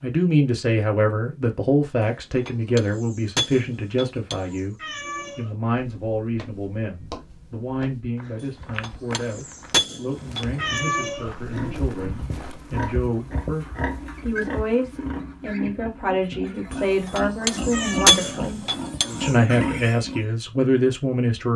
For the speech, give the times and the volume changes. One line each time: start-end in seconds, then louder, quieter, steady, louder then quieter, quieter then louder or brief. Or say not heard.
0.0-21.5 quieter then louder.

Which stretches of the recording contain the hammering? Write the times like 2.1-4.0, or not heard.
2.0-4.6, 8.4-10.4, 16.7-19.4.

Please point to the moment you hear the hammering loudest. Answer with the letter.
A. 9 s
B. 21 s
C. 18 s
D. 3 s
C.